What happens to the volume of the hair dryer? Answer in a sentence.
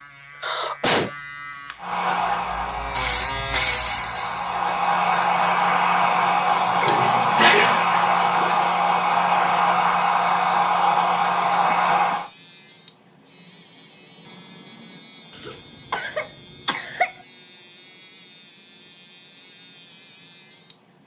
The loudness of the hair dryer goes up.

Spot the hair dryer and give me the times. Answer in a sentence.
You can hear the hair dryer from 1.8 to 12.3 s.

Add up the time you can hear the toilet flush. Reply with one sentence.
You can hear the toilet flush for 2 seconds altogether.